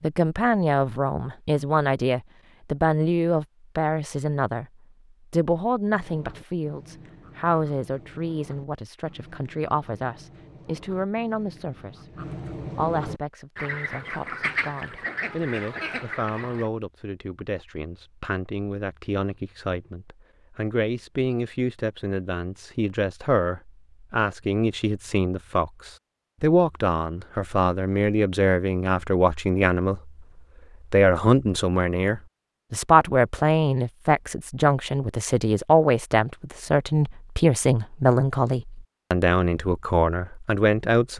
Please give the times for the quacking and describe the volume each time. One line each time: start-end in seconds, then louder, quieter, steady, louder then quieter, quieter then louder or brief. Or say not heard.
5.8-16.7 louder.